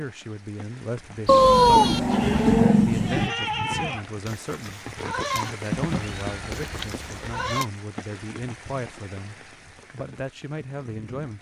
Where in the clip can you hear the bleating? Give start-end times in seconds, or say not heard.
1.2-7.7.